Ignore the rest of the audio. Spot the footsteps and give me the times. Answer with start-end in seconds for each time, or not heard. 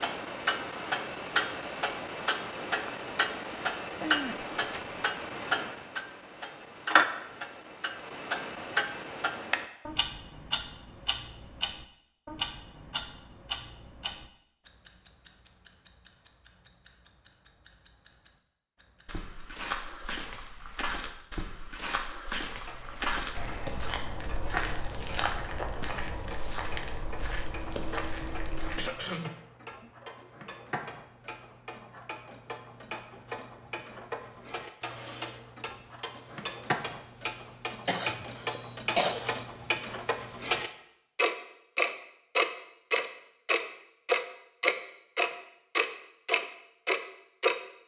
19.1-28.8.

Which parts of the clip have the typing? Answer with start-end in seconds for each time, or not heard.
not heard.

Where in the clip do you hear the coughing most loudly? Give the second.
39 s.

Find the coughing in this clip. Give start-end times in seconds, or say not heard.
4.0-5.0, 28.1-30.1, 37.9-39.5.